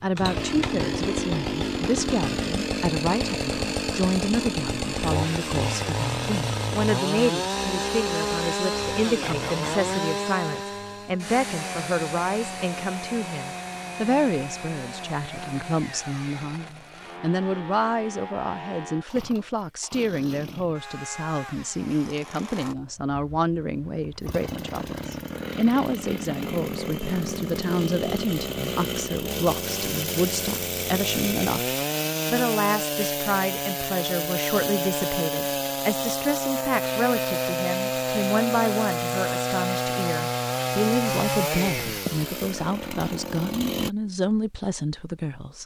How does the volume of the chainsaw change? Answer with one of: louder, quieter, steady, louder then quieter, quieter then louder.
quieter then louder.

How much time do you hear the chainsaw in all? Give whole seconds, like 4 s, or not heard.
44 s.